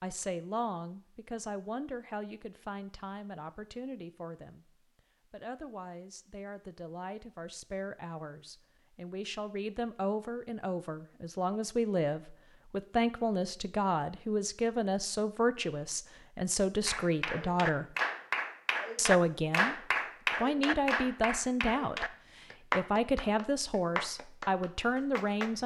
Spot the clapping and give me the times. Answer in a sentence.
The clapping can be heard from 16.9 to 25.6 s.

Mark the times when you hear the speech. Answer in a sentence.
The speech can be heard from 0.0 to 17.9 s, from 18.9 to 19.8 s and from 20.4 to 25.6 s.